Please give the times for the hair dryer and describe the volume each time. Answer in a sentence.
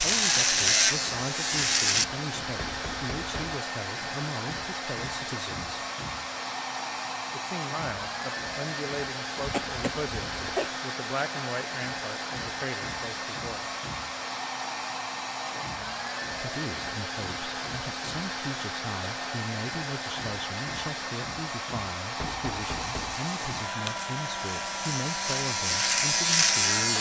The hair dryer can be heard from 0.0 to 26.9 s, at a steady volume.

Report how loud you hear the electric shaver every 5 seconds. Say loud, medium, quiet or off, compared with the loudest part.
loud, off, off, off, quiet, loud.